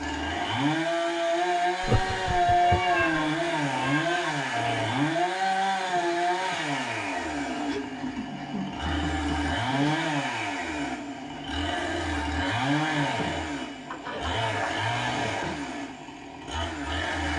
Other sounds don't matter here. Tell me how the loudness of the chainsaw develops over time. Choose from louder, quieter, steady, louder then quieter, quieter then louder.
quieter.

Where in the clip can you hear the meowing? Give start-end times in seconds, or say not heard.
1.9-4.3.